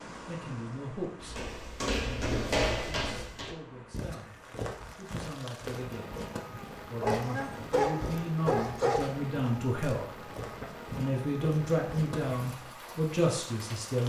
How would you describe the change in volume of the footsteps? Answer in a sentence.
The volume of the footsteps goes down.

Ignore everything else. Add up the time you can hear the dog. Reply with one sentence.
The dog can be heard for 2 seconds in total.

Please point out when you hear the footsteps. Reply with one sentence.
The footsteps can be heard from 1.2 to 12.4 s.